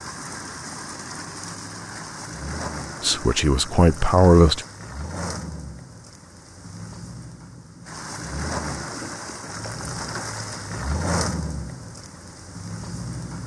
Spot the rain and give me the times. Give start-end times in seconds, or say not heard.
0.0-13.4.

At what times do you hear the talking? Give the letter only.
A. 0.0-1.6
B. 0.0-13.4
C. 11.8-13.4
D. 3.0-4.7
D.